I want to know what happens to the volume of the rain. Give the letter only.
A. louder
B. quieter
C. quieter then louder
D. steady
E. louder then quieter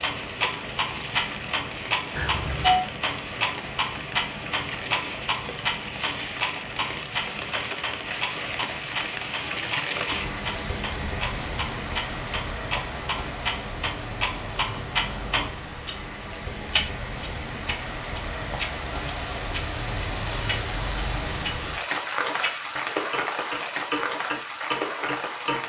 A.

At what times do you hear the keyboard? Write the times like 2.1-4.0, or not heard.
not heard.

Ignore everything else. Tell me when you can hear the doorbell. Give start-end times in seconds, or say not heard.
2.1-2.9.